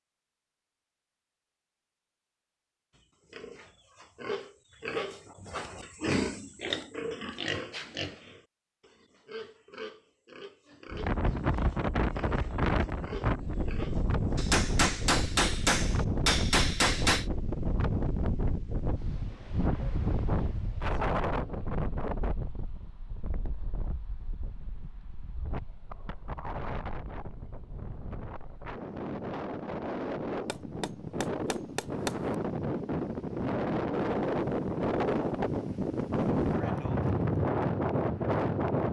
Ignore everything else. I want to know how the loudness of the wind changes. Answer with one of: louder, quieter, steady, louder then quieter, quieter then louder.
quieter then louder.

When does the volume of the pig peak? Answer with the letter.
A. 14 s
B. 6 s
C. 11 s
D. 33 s
B.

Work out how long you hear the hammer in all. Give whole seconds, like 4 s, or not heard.
5 s.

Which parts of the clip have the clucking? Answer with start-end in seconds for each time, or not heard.
not heard.